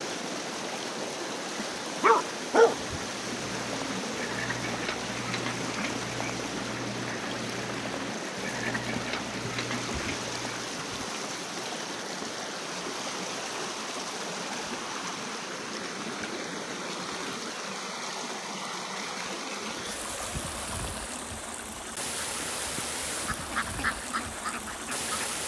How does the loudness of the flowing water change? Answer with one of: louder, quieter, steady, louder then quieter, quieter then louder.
steady.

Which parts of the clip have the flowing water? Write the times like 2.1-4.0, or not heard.
0.0-25.4.